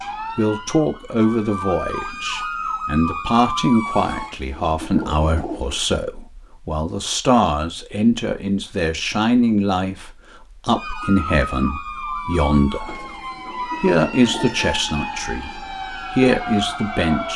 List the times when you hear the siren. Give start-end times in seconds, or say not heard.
0.0-4.3, 10.8-17.3.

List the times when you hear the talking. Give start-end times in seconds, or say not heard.
0.3-17.3.